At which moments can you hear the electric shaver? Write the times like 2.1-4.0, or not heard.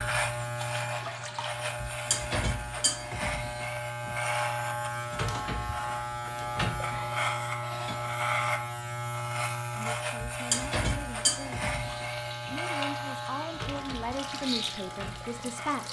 0.0-15.8.